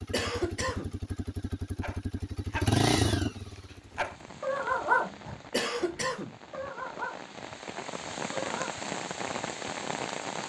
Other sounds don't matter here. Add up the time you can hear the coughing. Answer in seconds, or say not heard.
2 s.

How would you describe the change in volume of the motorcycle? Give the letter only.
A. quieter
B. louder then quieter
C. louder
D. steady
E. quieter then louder
B.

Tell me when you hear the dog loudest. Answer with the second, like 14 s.
5 s.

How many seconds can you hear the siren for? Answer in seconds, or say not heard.
not heard.